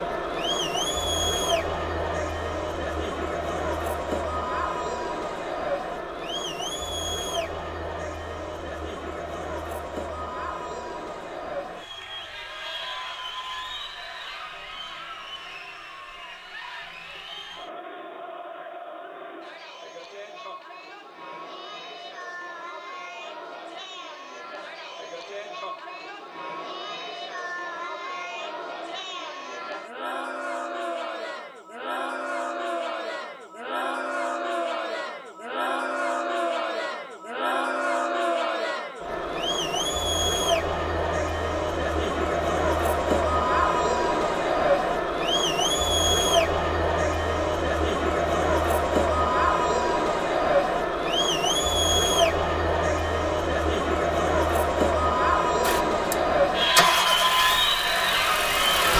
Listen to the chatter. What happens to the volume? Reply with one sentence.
The volume of the chatter goes down, then up.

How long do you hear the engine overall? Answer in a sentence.
The engine can be heard for 3 seconds in total.